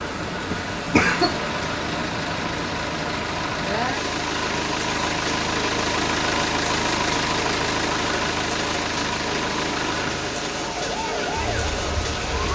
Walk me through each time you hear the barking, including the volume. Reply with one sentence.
You can't hear the barking here.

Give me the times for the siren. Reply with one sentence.
You can hear the siren from 10.7 to 12.5 s.